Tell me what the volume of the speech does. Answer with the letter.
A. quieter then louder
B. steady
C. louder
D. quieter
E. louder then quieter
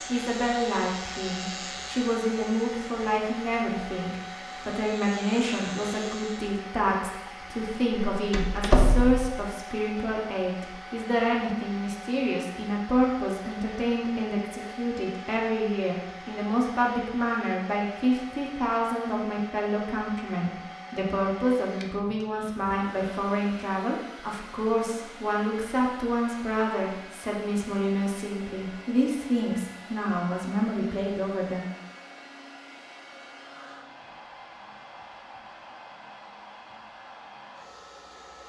B.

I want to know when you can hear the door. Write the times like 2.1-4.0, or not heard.
8.1-9.4.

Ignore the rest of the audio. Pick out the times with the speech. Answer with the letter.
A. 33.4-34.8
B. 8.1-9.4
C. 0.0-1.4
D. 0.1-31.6
D.